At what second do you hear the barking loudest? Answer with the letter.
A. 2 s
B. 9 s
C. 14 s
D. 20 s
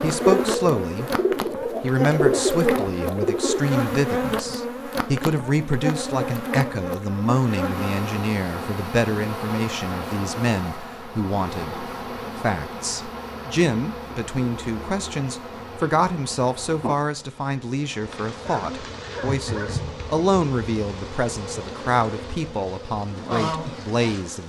D.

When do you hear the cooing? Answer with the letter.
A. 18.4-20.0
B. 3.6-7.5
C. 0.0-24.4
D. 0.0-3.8
D.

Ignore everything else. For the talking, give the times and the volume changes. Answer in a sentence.
You can hear the talking from 0.0 to 24.4 s, at a steady volume.